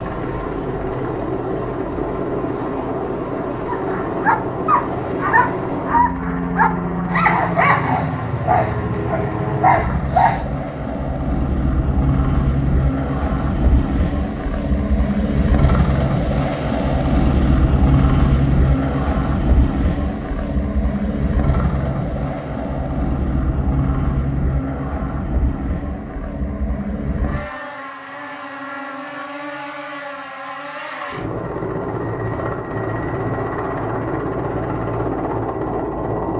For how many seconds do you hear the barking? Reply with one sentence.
The barking can be heard for 7 seconds in total.